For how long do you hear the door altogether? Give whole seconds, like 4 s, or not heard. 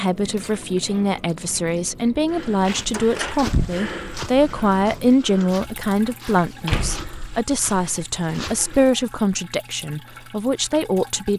2 s.